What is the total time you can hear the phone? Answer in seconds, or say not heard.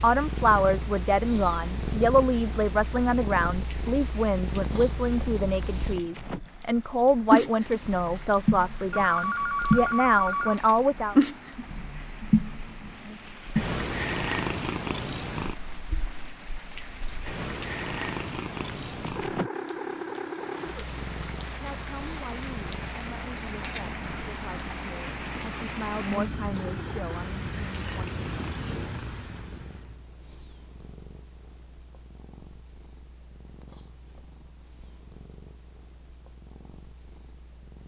2 s.